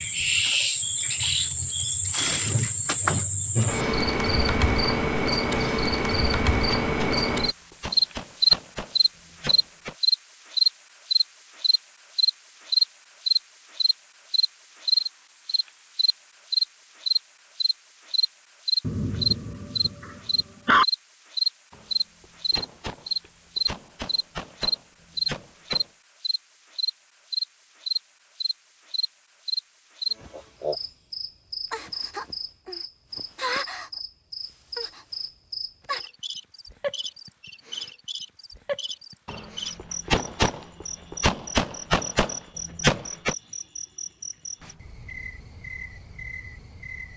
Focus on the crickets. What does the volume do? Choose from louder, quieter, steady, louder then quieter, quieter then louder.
quieter.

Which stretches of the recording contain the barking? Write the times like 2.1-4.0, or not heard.
18.8-20.9.